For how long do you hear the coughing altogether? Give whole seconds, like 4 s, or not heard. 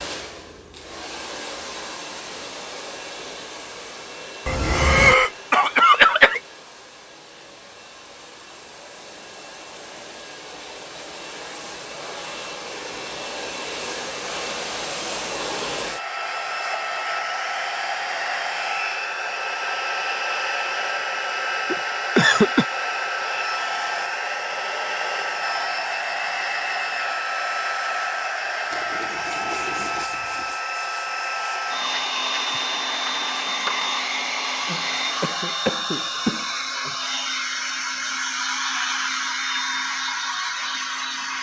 5 s.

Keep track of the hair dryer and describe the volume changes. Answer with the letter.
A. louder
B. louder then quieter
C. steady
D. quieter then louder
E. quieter
A.